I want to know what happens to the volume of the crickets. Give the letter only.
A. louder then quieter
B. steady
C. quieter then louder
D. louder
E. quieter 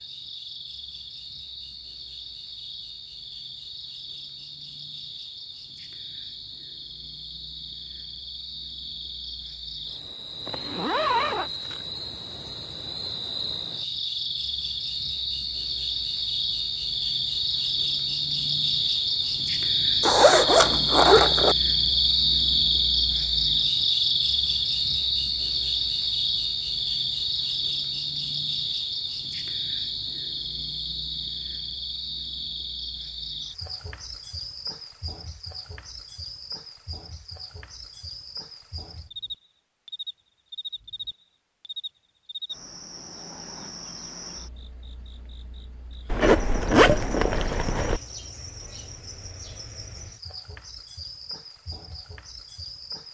A.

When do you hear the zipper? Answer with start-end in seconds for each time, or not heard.
10.4-11.5, 20.0-21.6, 46.1-48.0.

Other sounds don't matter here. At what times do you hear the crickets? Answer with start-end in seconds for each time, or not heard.
0.0-53.0.